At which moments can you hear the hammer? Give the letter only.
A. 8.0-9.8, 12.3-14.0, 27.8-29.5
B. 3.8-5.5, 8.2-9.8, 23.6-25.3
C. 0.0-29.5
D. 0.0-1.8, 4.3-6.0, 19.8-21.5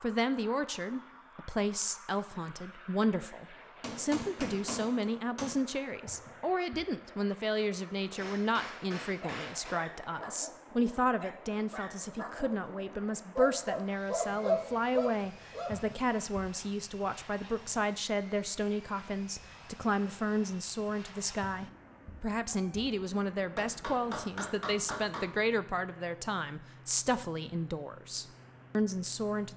B.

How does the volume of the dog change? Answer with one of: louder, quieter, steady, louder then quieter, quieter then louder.
louder.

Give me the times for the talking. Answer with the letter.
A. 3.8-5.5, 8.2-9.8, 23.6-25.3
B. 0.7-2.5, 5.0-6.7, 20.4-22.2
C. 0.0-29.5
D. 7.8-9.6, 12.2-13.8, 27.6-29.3
C.